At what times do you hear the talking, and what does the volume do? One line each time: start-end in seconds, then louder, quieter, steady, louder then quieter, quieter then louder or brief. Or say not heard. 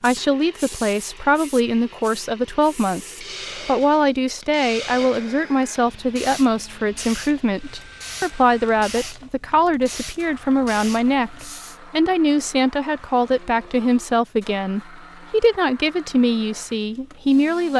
0.0-17.7 steady.